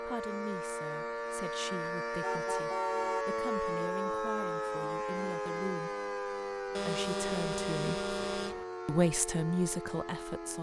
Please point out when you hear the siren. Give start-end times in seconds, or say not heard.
0.0-10.5.